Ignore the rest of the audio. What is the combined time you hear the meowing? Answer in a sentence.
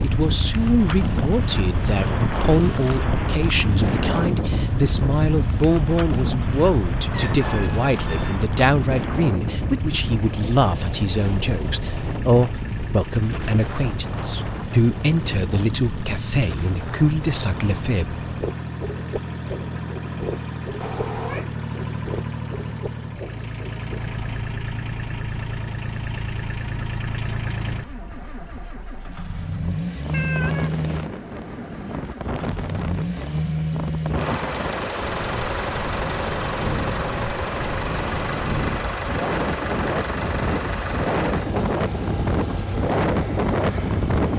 The meowing can be heard for 4 seconds in total.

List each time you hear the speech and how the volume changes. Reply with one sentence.
You can hear the speech from 0.0 to 18.1 s, at a steady volume.